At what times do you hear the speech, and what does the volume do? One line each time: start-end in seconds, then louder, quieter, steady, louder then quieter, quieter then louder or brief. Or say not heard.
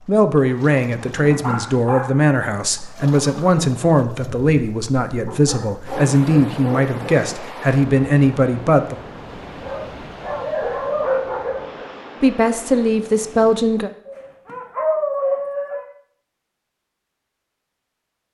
0.1-8.9 steady
12.2-13.9 brief.